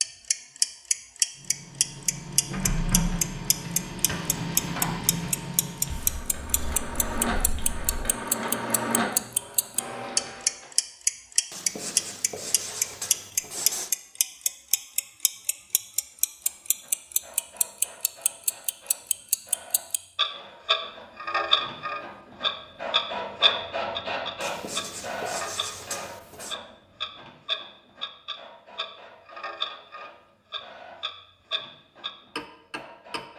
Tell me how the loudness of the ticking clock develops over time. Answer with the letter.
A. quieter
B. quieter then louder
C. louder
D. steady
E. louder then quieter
A.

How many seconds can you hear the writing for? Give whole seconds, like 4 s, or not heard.
7 s.